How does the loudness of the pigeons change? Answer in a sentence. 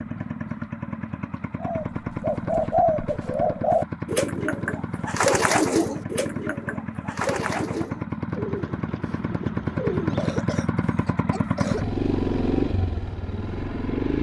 The volume of the pigeons goes down.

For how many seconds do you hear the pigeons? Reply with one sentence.
You can hear the pigeons for 9 seconds altogether.